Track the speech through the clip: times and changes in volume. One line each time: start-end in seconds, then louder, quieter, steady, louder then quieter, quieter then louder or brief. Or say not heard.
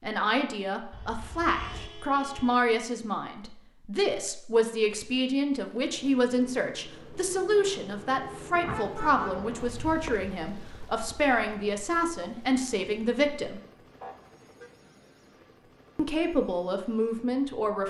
0.0-13.6 steady
15.9-17.8 brief.